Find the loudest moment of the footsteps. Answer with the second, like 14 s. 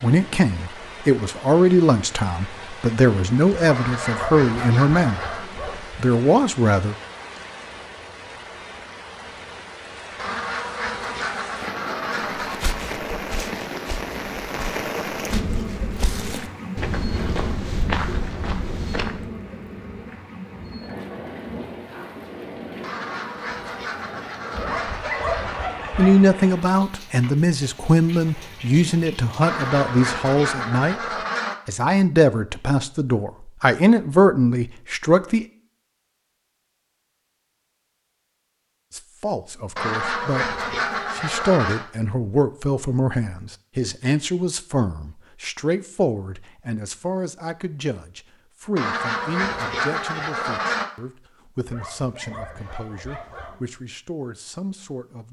18 s.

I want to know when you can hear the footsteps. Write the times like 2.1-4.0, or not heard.
12.4-19.2.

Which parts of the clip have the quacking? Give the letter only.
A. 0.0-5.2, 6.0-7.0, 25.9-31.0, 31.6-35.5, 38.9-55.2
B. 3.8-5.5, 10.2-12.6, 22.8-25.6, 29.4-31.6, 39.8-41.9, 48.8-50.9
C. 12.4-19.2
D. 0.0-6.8
B.